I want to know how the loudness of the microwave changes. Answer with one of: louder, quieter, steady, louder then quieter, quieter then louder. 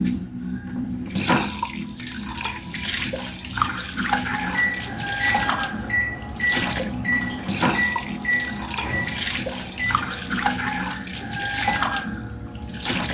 quieter.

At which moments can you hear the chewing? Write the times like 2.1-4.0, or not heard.
not heard.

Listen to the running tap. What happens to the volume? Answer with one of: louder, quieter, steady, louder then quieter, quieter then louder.
steady.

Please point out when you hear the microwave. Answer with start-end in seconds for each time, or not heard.
4.4-12.9.